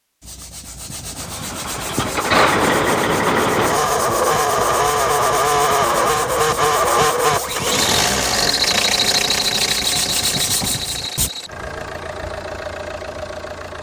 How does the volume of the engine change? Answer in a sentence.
The volume of the engine goes down.